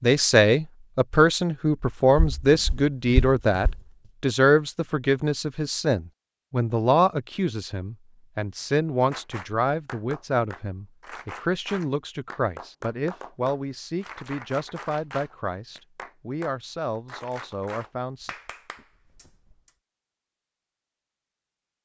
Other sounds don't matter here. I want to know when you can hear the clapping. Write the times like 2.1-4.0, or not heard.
9.1-19.7.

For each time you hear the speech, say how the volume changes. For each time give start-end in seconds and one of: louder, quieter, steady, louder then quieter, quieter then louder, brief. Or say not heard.
0.0-18.3 quieter.